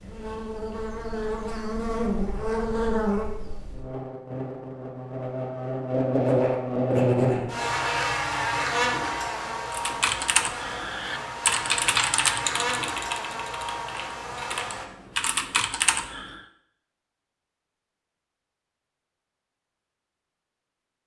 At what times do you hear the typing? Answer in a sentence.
The typing can be heard from 9.7 to 16.4 s.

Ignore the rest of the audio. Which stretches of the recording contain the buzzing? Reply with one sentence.
You can hear the buzzing from 0.0 to 14.8 s.